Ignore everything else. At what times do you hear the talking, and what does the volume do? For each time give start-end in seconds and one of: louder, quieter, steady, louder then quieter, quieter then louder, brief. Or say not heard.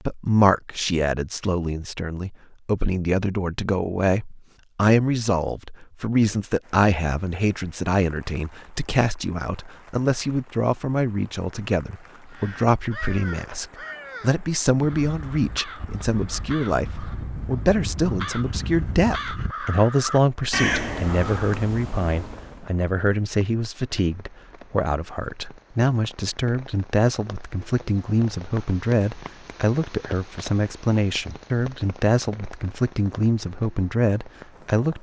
0.1-34.9 steady.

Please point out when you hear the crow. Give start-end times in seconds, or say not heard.
12.2-22.6.